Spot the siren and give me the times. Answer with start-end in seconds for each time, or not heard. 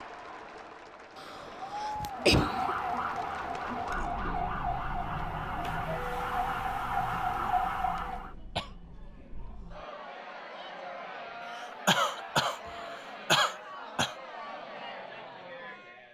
2.1-8.3.